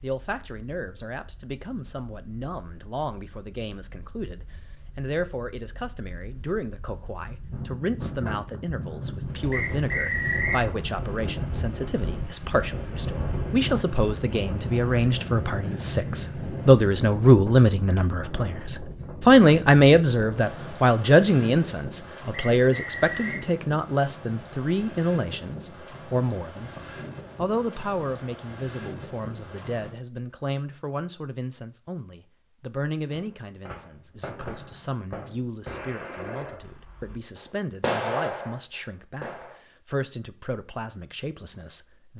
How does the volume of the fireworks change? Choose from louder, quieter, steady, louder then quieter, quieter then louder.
louder.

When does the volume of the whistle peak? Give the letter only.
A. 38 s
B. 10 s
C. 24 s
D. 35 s
B.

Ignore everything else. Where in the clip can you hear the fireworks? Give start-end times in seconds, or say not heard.
33.1-39.6.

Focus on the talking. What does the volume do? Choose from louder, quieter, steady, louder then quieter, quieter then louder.
louder then quieter.